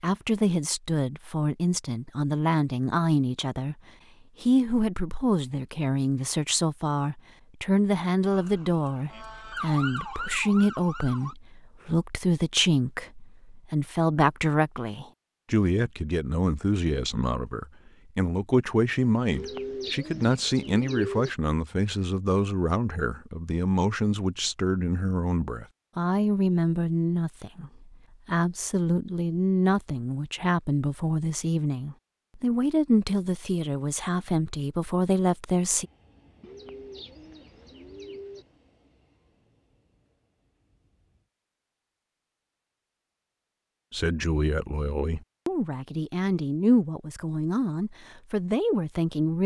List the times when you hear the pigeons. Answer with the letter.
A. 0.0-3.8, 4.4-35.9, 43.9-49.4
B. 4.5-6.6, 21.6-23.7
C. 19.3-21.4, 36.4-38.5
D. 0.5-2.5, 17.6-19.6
C.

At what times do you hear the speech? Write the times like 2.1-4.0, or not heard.
0.0-3.8, 4.4-35.9, 43.9-49.4.